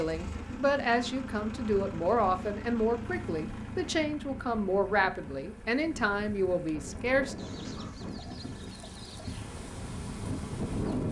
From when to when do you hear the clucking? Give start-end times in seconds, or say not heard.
7.3-9.4.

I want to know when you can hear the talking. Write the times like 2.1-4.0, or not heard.
0.0-7.3.